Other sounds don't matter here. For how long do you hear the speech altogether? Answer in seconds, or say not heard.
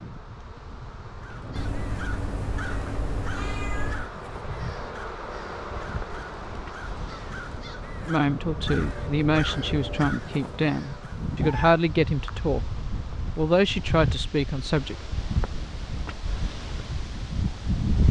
6 s.